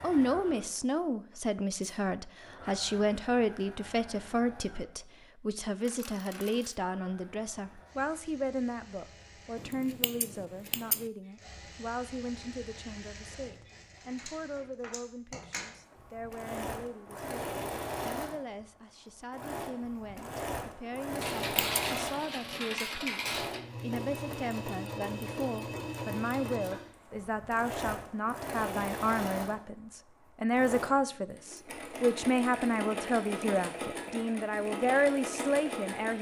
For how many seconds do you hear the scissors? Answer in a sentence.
The scissors can be heard for 2 seconds in total.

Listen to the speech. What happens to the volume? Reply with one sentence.
The loudness of the speech goes down, then up.